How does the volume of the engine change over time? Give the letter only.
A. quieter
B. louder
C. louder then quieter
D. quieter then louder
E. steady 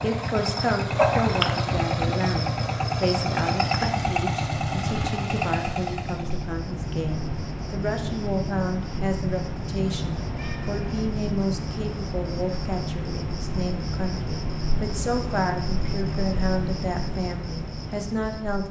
E.